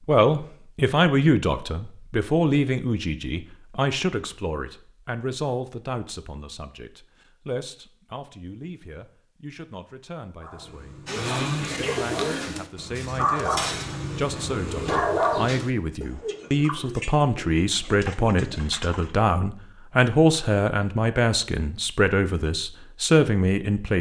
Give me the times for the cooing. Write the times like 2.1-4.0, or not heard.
11.1-19.1.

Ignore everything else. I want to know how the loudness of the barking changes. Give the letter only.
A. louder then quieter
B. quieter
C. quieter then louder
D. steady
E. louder
E.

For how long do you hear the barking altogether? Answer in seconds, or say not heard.
5 s.